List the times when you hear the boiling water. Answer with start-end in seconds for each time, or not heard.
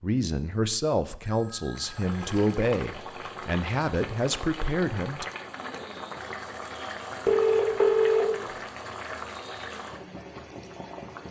1.7-11.2.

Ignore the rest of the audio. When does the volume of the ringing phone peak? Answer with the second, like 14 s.
8 s.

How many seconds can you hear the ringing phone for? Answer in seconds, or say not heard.
2 s.